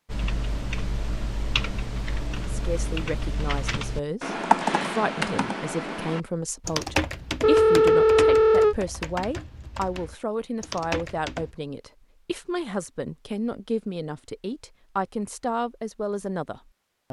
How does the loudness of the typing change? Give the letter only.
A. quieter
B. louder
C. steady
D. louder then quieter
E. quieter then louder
D.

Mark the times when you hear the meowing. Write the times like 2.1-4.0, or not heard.
not heard.